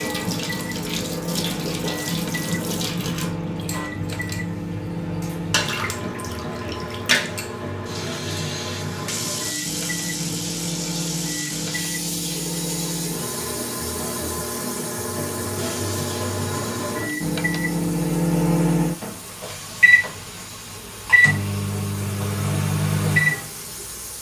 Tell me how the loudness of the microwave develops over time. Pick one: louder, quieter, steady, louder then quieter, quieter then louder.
louder.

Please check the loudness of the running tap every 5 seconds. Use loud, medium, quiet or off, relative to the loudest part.
loud, loud, loud, medium, quiet.